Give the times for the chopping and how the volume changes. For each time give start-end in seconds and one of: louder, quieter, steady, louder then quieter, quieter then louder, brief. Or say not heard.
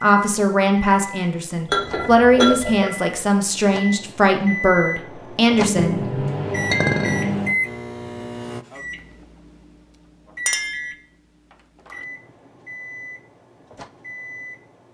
not heard.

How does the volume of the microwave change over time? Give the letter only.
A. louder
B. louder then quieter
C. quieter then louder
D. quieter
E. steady
B.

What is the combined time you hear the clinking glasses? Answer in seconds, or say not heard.
2 s.